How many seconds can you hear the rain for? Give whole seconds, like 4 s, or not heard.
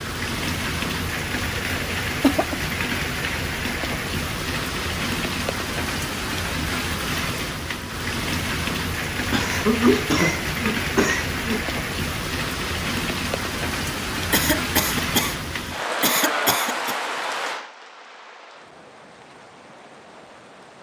21 s.